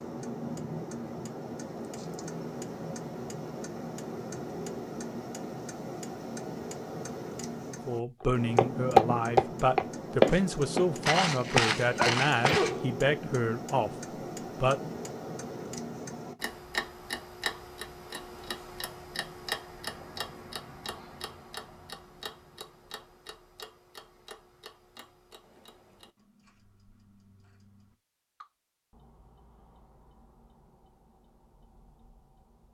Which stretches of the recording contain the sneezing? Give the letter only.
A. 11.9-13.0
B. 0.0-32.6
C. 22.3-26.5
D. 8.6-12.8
A.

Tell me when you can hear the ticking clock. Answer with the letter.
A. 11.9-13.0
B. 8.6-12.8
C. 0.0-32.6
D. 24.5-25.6
C.